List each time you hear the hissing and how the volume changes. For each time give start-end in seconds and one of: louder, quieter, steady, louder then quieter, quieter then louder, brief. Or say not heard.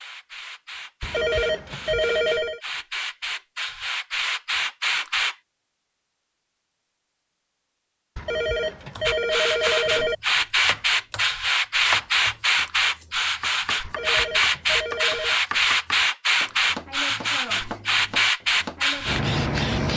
0.0-5.3 louder
9.1-19.9 steady.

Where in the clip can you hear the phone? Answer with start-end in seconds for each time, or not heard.
1.0-2.6, 8.2-10.2, 13.8-15.4.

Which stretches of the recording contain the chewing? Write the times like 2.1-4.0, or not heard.
not heard.